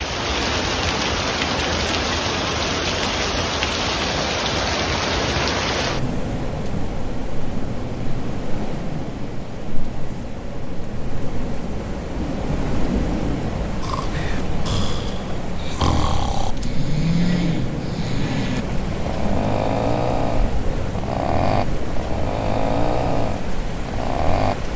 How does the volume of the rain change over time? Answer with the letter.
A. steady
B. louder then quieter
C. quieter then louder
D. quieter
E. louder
D.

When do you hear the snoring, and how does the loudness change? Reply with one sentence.
You can hear the snoring from 13.8 to 24.6 s, at a steady volume.